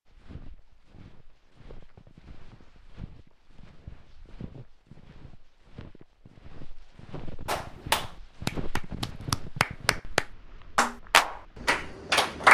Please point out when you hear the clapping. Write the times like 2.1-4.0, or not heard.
7.5-12.4.